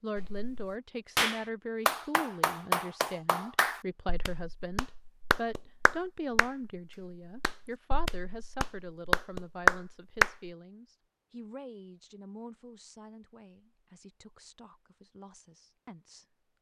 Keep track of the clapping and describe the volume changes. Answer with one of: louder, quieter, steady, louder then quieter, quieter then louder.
quieter then louder.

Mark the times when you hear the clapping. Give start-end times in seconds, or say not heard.
0.1-10.5.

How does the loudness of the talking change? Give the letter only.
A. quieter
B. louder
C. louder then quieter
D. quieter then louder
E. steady
A.